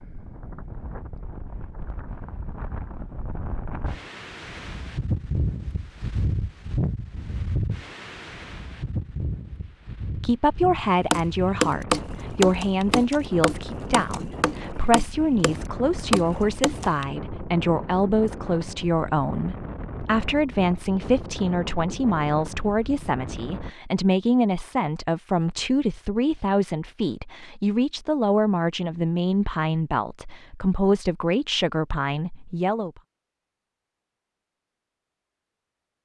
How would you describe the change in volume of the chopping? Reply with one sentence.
The loudness of the chopping goes down, then up.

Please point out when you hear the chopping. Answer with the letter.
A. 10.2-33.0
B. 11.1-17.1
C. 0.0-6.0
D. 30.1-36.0
B.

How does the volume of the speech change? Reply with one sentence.
The loudness of the speech stays about the same.